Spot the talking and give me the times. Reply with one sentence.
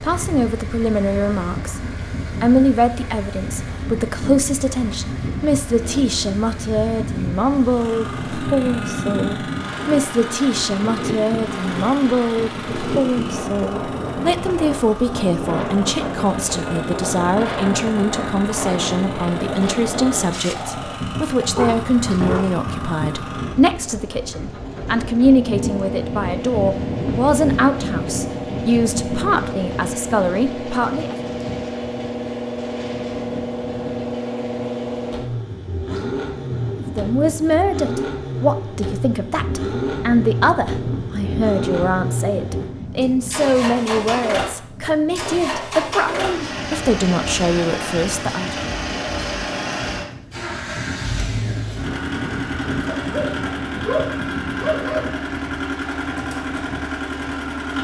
The talking can be heard from 0.0 to 1.8 s, from 2.4 to 31.2 s and from 36.8 to 48.5 s.